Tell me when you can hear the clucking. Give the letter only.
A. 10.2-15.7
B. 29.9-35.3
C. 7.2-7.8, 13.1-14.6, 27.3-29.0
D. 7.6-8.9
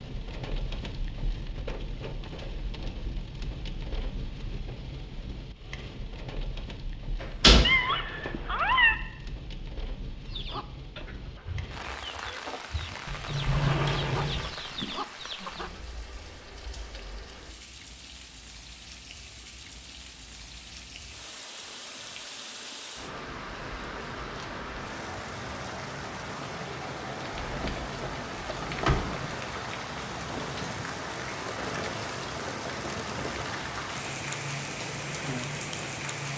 A.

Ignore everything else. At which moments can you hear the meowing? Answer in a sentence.
The meowing can be heard from 7.6 to 8.9 s.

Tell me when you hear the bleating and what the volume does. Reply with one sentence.
The bleating can't be heard in this clip.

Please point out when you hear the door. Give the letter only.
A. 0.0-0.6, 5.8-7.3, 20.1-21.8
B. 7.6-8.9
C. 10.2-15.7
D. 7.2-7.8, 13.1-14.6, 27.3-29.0
D.